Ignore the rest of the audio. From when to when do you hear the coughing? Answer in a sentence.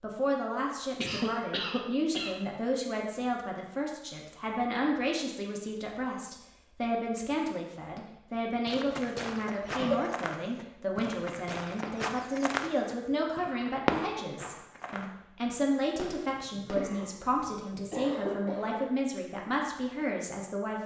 The coughing can be heard from 0.9 to 2.4 s, from 9.6 to 10.1 s and from 16.4 to 18.9 s.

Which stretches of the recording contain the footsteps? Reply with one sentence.
The footsteps can be heard from 8.7 to 15.2 s.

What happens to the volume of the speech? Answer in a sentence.
The loudness of the speech stays about the same.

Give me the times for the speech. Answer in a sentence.
You can hear the speech from 0.0 to 20.8 s.